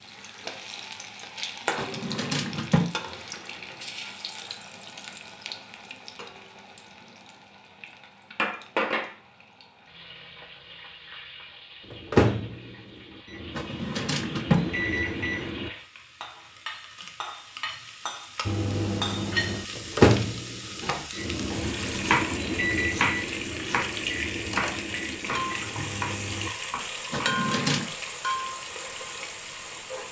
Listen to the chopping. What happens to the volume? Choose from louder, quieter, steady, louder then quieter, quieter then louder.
quieter.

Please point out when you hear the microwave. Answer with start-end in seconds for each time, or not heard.
11.8-15.7, 18.4-26.5.